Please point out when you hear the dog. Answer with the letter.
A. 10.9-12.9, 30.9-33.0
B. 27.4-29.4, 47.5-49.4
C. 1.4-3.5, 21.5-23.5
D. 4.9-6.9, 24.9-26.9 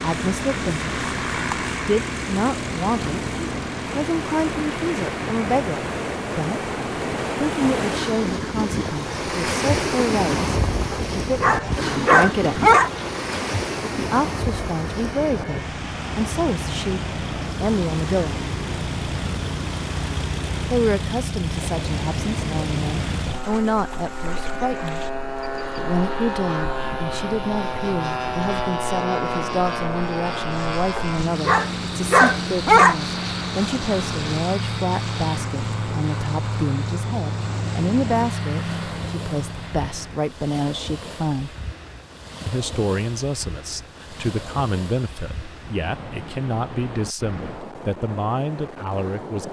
A.